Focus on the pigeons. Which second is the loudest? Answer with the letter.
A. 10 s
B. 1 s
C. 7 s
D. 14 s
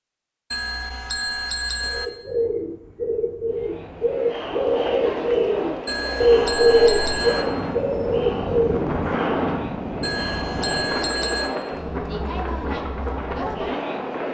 C.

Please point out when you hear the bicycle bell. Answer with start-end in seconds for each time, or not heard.
0.5-2.0, 5.8-7.5, 10.0-11.5.